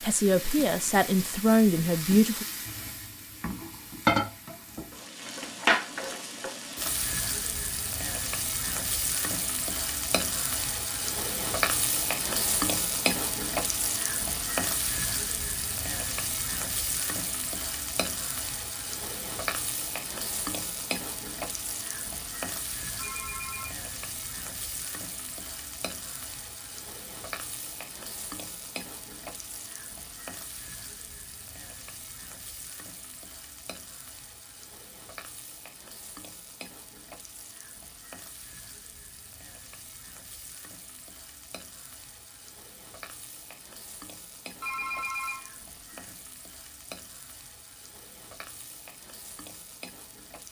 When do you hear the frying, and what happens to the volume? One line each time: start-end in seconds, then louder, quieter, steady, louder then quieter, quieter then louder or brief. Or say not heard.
0.0-50.4 quieter.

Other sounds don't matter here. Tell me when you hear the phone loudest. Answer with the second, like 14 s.
45 s.